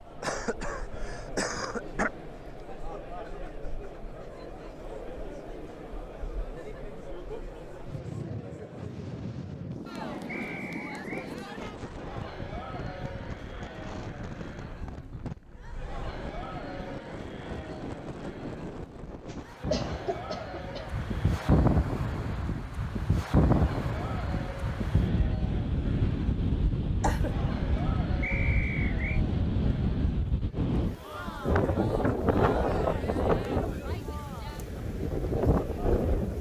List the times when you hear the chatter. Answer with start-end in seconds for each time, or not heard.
0.0-36.3.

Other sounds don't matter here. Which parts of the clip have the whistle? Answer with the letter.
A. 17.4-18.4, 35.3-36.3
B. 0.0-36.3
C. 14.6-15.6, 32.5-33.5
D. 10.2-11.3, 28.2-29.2
D.